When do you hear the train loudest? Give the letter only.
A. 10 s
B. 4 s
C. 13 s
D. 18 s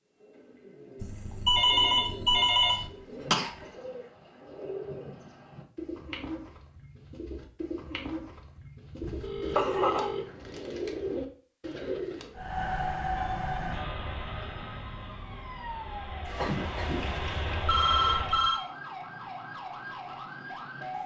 C.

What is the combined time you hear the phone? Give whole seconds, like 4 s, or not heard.
5 s.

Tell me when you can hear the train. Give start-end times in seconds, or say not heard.
12.3-18.5.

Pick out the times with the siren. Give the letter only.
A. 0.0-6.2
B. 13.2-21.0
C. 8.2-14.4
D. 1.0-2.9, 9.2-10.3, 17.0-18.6
B.